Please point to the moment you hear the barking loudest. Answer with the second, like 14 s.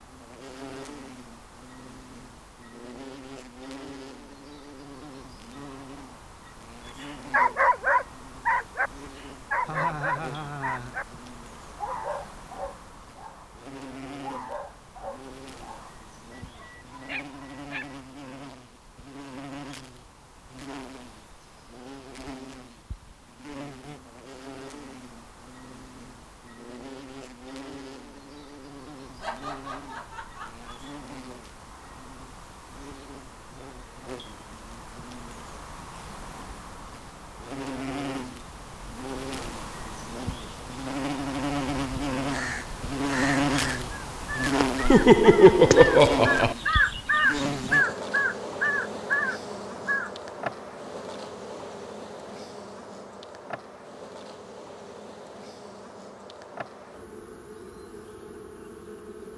8 s.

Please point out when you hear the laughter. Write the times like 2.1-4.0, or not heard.
9.7-10.9, 29.2-30.9, 44.8-46.5.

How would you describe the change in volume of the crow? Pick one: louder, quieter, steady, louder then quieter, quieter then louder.
louder.